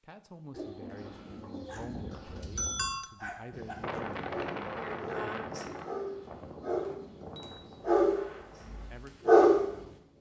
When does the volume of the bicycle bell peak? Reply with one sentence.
The loudest moment of the bicycle bell is at 3 seconds.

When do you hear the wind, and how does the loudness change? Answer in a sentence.
The wind can be heard from 3.5 to 10.1 s, getting quieter.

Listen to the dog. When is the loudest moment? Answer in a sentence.
The volume of the dog peaks at 9 seconds.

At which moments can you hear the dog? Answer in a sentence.
The dog can be heard from 1.6 to 7.0 s and from 7.8 to 9.7 s.